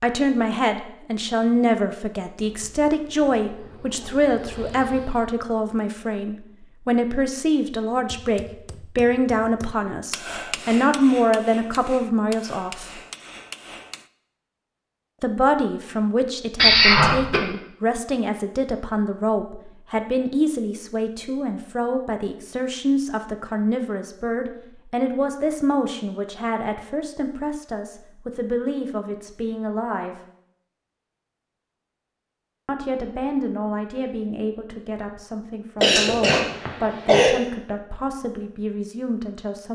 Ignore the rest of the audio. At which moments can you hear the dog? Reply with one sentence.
The dog can't be heard in this clip.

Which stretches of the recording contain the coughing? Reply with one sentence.
The coughing can be heard from 16.6 to 17.4 s and from 35.8 to 37.4 s.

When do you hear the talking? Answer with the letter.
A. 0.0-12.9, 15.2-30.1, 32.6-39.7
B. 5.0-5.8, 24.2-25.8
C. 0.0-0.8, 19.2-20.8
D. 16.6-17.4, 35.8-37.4
A.